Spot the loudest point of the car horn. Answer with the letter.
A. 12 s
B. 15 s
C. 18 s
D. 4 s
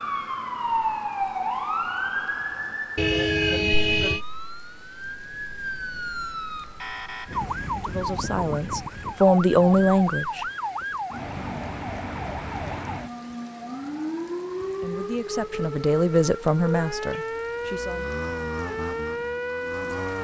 D.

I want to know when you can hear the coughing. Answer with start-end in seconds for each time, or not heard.
not heard.